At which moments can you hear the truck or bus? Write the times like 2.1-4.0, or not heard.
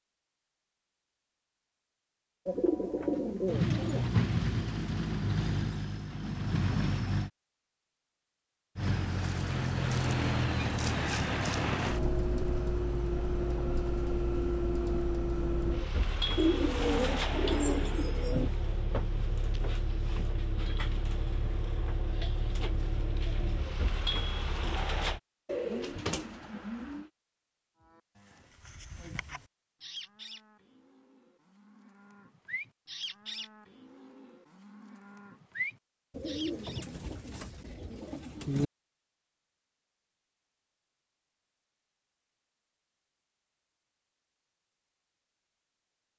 3.5-7.3, 8.8-25.2.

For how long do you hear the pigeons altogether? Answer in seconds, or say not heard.
8 s.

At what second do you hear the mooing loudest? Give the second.
36 s.